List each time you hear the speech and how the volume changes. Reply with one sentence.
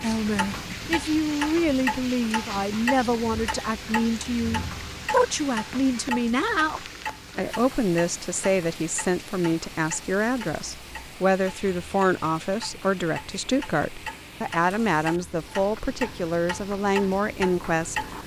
You can hear the speech from 0.0 to 18.1 s, at a steady volume.